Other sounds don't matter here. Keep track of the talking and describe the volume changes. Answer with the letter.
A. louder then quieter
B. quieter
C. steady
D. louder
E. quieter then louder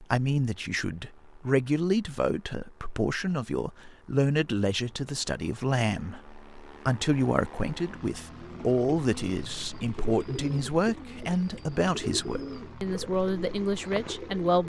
C.